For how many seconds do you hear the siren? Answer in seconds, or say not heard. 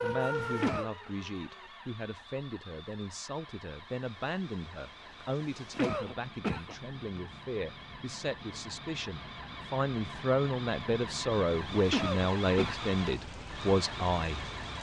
2 s.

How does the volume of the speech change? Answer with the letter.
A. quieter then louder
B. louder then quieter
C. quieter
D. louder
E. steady
D.